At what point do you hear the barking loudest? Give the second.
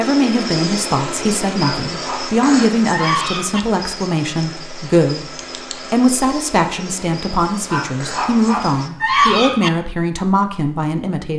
9 s.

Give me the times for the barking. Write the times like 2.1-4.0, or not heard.
1.6-3.6, 7.7-9.7.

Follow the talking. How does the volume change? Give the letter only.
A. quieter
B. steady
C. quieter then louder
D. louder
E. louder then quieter
B.